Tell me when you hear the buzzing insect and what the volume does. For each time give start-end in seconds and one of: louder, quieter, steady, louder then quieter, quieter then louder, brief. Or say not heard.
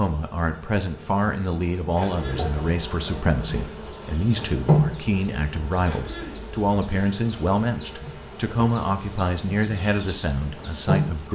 0.0-11.3 louder then quieter.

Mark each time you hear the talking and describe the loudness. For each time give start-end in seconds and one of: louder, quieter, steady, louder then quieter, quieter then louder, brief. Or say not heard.
0.0-11.3 steady.